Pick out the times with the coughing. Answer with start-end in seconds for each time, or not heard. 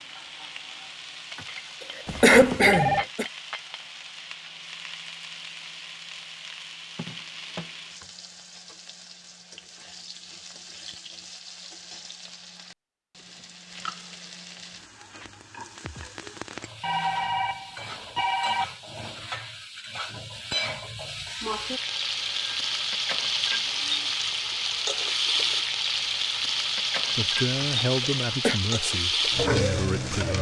2.2-3.2, 27.6-28.6.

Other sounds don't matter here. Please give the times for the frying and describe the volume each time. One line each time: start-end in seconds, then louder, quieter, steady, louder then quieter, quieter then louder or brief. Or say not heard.
0.0-30.3 louder.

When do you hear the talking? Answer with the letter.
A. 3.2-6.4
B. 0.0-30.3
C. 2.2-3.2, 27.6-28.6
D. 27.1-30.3
D.